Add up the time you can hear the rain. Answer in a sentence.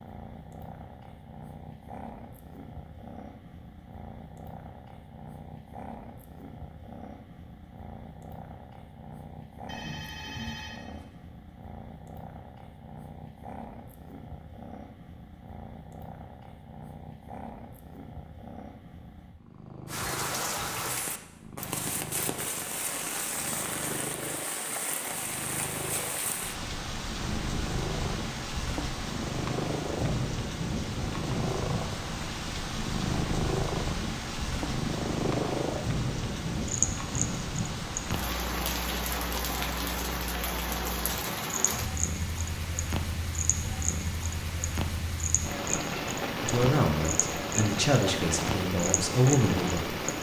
The rain can be heard for 30 seconds in total.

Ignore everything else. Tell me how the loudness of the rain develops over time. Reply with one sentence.
The loudness of the rain stays about the same.